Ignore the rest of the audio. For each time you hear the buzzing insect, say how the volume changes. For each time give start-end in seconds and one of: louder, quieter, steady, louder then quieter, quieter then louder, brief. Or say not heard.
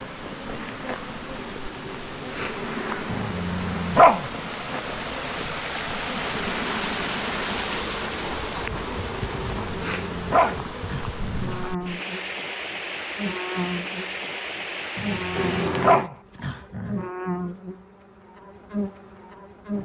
0.0-19.8 steady.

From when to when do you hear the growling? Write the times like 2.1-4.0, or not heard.
3.0-4.2, 9.4-11.7, 14.9-17.1.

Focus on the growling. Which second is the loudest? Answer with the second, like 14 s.
4 s.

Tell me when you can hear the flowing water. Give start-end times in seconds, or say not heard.
0.0-15.9.